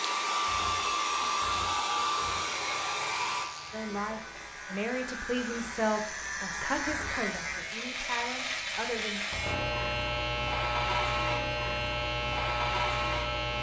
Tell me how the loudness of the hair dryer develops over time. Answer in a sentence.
The volume of the hair dryer goes down.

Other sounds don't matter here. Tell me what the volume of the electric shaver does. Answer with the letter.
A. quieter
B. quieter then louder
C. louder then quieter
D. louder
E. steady
D.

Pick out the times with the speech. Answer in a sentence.
The speech can be heard from 3.7 to 9.2 s.